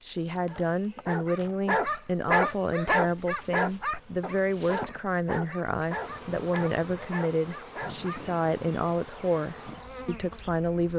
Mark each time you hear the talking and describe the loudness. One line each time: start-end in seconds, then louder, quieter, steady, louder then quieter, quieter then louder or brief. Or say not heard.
0.1-10.9 steady.